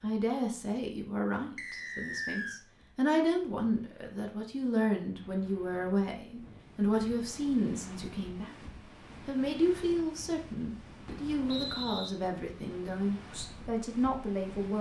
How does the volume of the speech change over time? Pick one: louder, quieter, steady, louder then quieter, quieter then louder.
steady.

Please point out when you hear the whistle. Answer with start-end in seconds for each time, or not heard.
1.6-2.6, 11.4-12.1.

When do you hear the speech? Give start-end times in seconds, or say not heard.
0.0-8.6, 9.2-14.7.